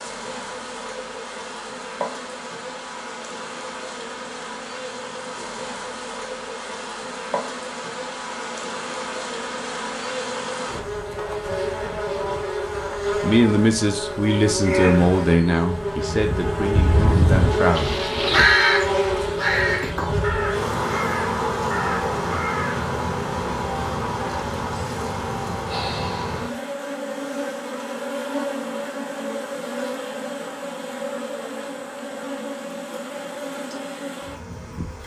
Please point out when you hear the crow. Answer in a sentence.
The crow can be heard from 16.3 to 22.9 s.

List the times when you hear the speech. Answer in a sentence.
The speech can be heard from 13.2 to 18.4 s.